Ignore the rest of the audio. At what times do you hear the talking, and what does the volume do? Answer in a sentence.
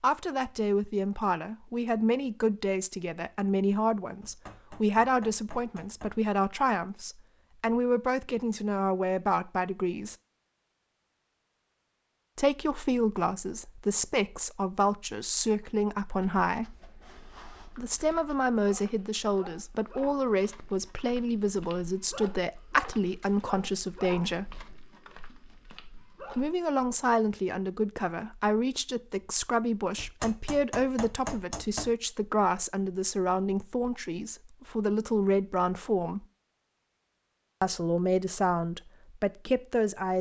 You can hear the talking from 0.0 to 10.2 s, at a steady volume; from 12.3 to 16.8 s, at a steady volume; from 17.8 to 24.6 s, at a steady volume; from 26.4 to 36.2 s, at a steady volume; and briefly from 37.6 to 40.1 s.